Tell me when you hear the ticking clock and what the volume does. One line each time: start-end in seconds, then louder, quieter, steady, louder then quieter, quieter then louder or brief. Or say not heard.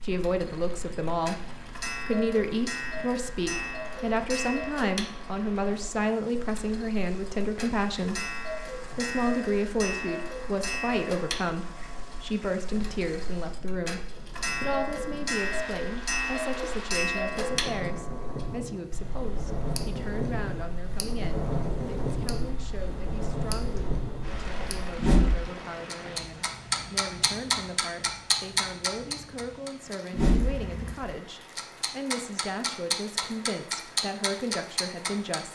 0.1-35.5 louder.